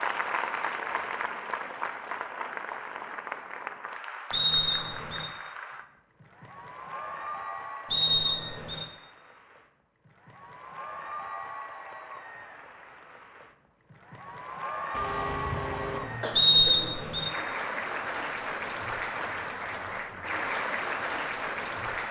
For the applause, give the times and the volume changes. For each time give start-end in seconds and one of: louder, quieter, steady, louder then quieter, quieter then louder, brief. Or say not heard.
0.0-22.0 quieter then louder.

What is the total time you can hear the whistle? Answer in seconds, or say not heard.
3 s.